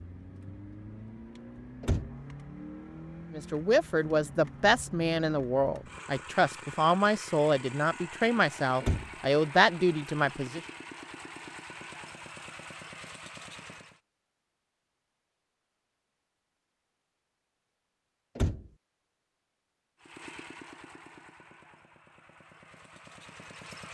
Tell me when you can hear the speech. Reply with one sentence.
The speech can be heard from 3.3 to 10.6 s.